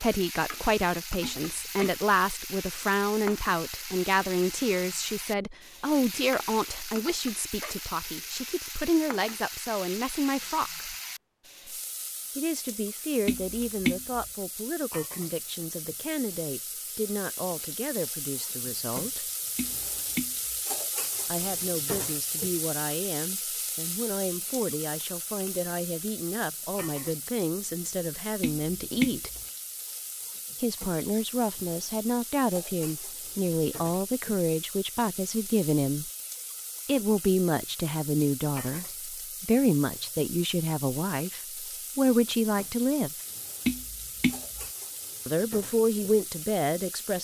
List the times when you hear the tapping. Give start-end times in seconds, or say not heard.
1.2-2.0, 13.2-14.2, 19.6-20.6, 28.4-29.4, 43.6-44.6.